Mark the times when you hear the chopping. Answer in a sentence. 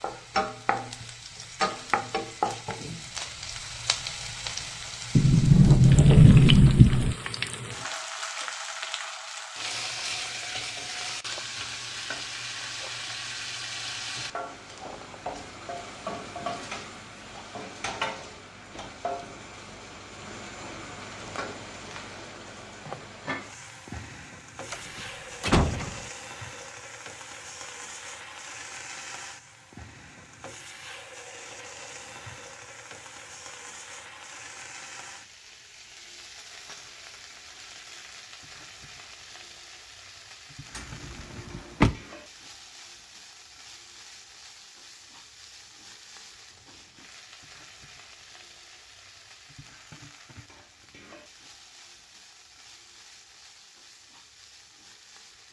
You can't hear the chopping here.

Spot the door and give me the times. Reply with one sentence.
You can hear the door from 5.2 to 7.2 s, from 24.7 to 26.1 s and from 40.8 to 42.0 s.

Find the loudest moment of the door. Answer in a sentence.
The loudest moment of the door is at 6 seconds.